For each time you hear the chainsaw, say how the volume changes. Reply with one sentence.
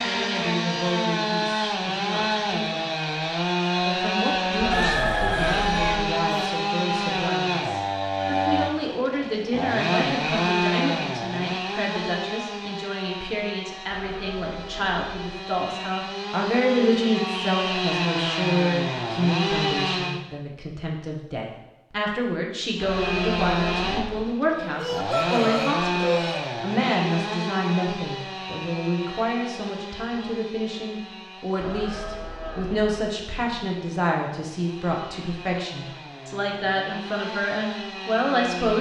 You can hear the chainsaw from 0.0 to 20.2 s, getting quieter then louder; and from 22.8 to 38.7 s, getting quieter then louder.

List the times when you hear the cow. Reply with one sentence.
You can hear the cow from 4.6 to 6.0 s, from 13.9 to 15.1 s, from 22.8 to 24.2 s and from 31.6 to 33.0 s.